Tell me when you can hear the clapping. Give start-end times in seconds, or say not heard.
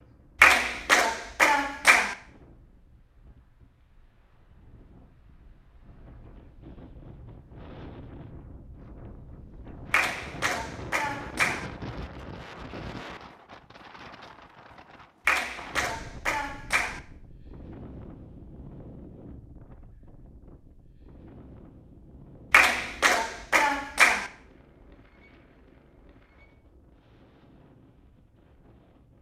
0.4-2.1, 9.9-11.7, 15.2-17.0, 22.5-24.3.